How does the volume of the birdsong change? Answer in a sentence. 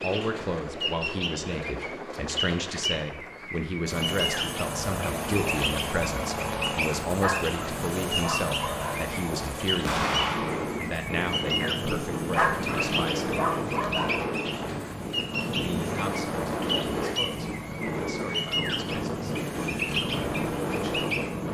The loudness of the birdsong stays about the same.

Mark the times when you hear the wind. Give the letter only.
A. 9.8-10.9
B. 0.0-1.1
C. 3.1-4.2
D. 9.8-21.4
D.